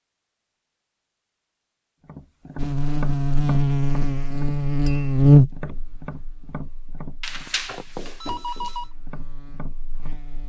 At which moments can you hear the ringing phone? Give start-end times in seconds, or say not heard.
7.2-8.8.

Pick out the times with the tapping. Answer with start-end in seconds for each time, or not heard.
2.0-10.2.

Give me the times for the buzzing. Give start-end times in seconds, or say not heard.
2.5-10.4.